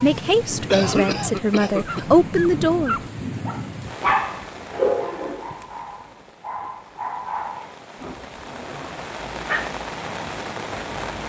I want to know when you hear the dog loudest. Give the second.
5 s.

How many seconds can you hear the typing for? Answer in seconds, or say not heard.
not heard.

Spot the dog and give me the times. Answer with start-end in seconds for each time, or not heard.
1.8-9.8.